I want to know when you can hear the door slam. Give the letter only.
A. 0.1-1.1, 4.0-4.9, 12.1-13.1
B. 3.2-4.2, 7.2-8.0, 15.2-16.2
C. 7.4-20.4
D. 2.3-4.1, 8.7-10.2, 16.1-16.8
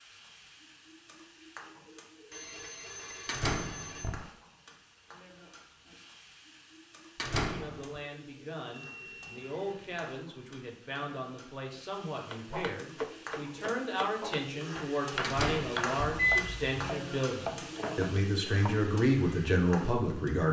B.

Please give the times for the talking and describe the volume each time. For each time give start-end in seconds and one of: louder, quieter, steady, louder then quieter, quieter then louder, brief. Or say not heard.
7.4-20.4 louder.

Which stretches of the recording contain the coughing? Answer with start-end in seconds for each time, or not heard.
not heard.